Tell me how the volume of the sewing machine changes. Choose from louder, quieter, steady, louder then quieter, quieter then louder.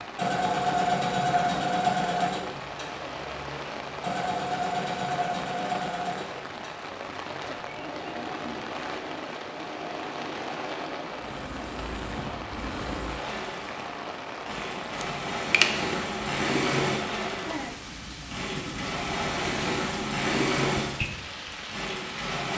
quieter then louder.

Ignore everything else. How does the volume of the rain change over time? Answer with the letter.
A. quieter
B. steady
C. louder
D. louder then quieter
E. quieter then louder
B.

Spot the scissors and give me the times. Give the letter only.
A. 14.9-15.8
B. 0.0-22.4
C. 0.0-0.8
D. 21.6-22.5
A.